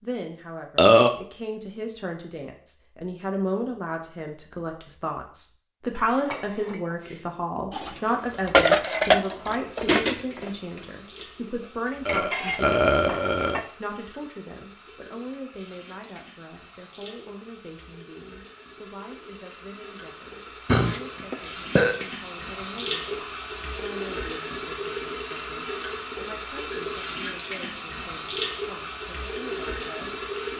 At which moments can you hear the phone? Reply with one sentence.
The phone can't be heard in this clip.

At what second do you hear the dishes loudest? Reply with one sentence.
The volume of the dishes peaks at 9 seconds.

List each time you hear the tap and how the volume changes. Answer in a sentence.
The tap can be heard from 8.0 to 30.5 s, getting louder.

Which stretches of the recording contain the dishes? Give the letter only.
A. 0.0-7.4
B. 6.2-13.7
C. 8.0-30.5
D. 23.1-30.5
B.